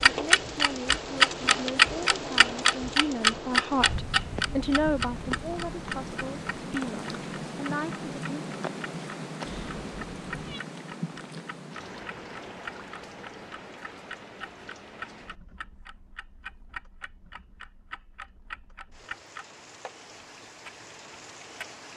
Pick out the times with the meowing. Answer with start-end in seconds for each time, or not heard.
9.4-10.6.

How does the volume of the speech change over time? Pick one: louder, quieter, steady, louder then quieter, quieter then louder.
louder then quieter.